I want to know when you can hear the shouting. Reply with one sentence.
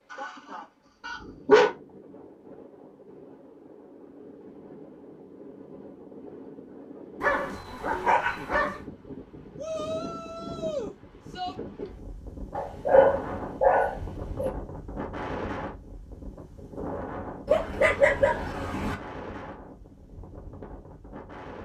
You can hear the shouting from 9.6 to 11.6 s.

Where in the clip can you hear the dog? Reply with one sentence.
You can hear the dog from 0.1 to 1.7 s, from 7.2 to 8.8 s, from 12.5 to 14.5 s and from 17.4 to 18.9 s.